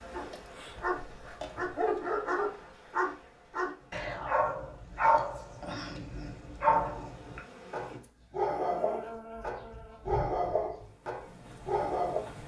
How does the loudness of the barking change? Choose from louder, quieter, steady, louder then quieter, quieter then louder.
steady.